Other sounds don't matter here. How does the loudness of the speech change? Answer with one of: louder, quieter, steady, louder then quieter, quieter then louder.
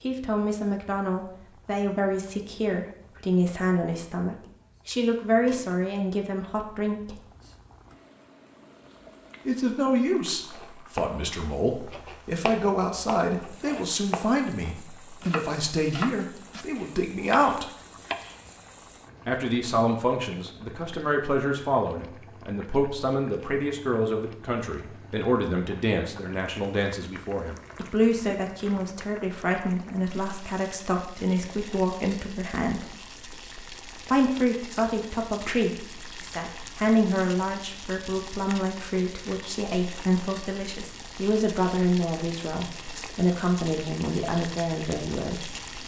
steady.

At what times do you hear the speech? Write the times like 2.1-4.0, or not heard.
0.0-7.2, 9.4-17.6, 19.2-33.0, 34.0-45.5.